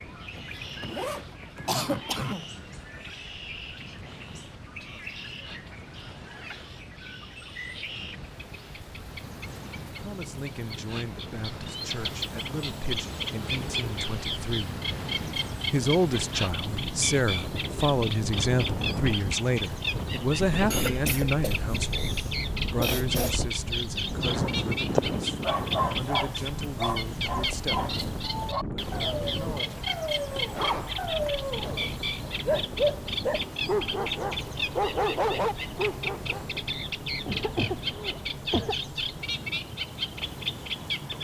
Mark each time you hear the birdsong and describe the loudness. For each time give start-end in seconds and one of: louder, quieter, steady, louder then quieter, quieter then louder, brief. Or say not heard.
0.0-41.1 louder.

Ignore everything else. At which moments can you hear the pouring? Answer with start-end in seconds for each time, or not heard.
not heard.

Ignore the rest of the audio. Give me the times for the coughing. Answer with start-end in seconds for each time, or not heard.
1.6-2.5, 20.7-23.4, 37.2-38.8.